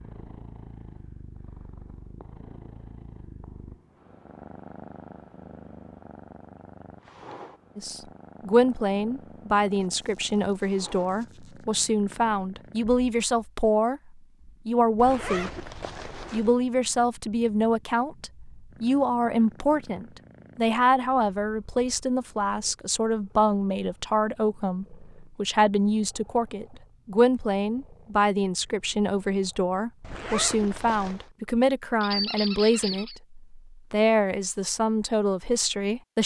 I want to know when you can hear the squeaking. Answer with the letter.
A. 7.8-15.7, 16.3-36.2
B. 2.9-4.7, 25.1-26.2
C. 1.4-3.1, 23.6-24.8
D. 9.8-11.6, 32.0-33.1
D.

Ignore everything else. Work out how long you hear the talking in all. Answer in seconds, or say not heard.
28 s.